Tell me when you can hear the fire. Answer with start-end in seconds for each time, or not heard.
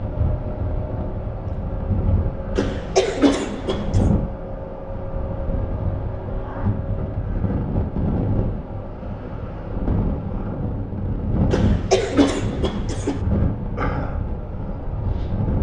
not heard.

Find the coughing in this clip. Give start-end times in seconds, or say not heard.
2.5-4.0, 11.5-13.2.